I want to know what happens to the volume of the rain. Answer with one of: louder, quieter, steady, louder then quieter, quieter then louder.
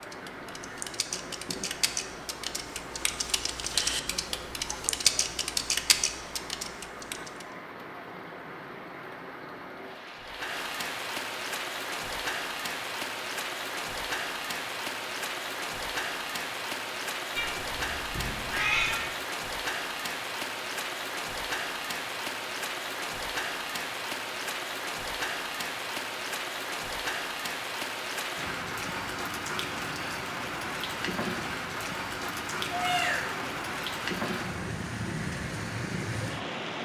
louder.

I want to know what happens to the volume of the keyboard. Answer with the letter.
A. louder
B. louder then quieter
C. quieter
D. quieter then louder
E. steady
A.